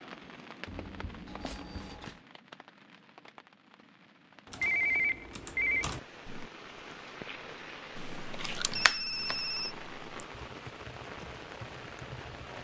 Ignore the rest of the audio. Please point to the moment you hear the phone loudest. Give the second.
5 s.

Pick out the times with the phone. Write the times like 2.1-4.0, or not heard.
0.7-2.0, 4.6-5.8, 8.8-9.8.